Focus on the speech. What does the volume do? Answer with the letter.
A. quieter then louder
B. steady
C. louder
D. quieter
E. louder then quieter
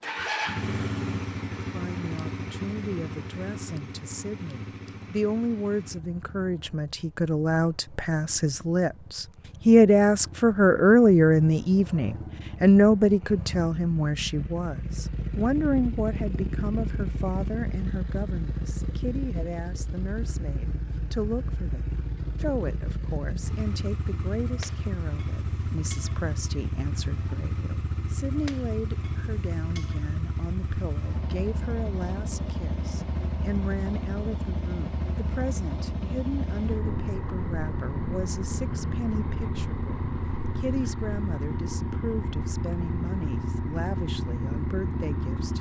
D.